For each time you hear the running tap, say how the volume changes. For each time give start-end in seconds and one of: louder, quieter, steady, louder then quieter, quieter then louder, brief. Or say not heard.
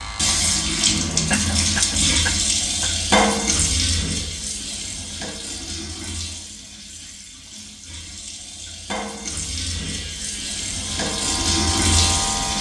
0.0-12.5 quieter then louder.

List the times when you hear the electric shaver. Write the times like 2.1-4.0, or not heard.
0.0-2.1, 9.8-12.5.